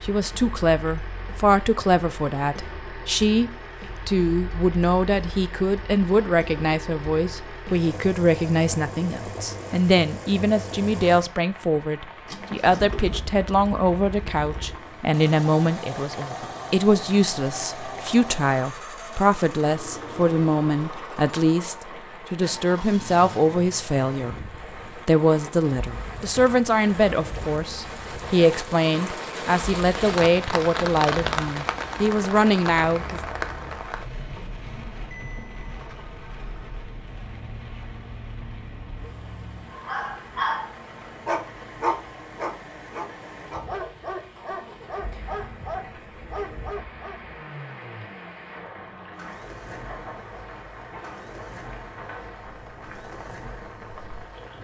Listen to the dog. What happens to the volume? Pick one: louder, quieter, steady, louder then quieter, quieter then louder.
quieter.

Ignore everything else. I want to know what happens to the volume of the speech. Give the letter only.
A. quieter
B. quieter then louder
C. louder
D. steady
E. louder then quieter
D.